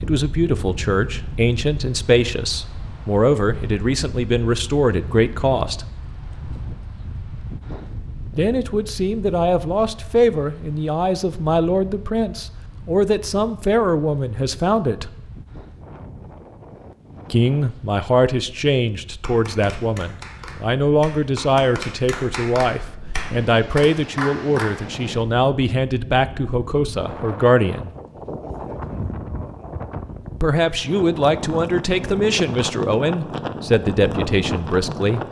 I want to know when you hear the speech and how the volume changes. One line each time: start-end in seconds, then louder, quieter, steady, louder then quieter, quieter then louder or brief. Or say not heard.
0.0-5.8 steady
8.3-15.1 steady
17.3-27.9 steady
30.4-35.2 steady.